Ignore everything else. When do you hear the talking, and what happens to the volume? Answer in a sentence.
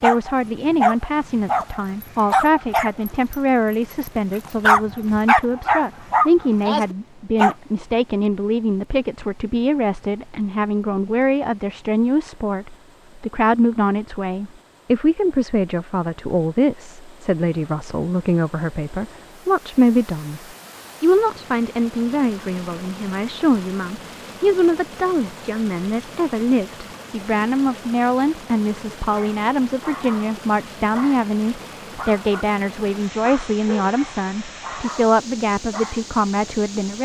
The talking can be heard from 0.0 to 20.4 s, at a steady volume; and from 21.0 to 37.0 s, at a steady volume.